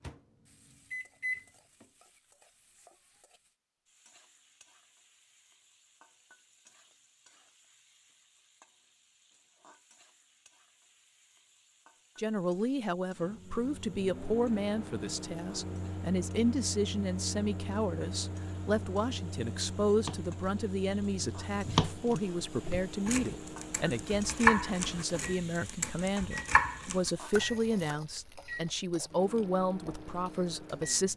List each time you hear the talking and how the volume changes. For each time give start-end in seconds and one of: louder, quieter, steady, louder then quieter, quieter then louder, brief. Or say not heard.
12.2-31.1 steady.